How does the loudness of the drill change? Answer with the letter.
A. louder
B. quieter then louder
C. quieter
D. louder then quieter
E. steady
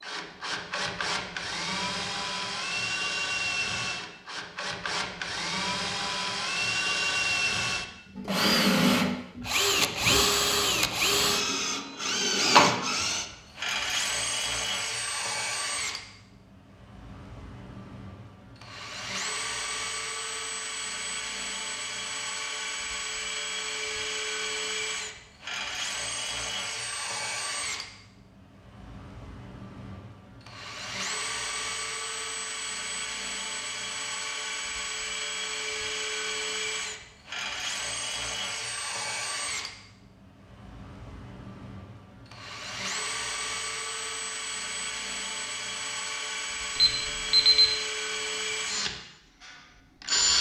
C.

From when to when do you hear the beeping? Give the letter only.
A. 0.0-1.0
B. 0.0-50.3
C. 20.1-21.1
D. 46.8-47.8
D.